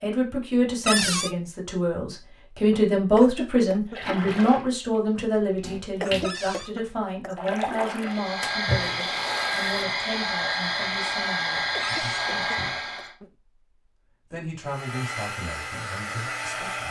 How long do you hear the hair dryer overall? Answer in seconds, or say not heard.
7 s.